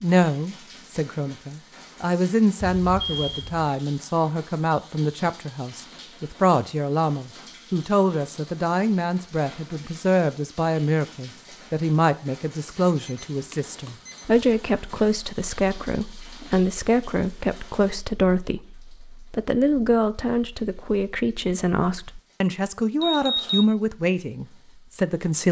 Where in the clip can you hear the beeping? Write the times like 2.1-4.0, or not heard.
2.6-3.7, 13.1-14.2, 23.0-23.6.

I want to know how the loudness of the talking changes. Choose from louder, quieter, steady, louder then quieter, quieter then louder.
steady.